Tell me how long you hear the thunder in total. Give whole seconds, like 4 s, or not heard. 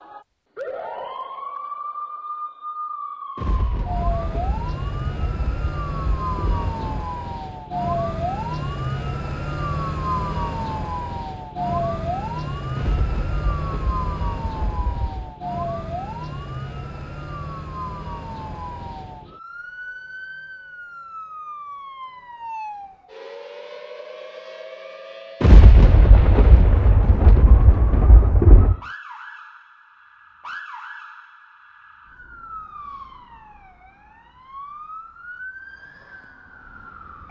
10 s.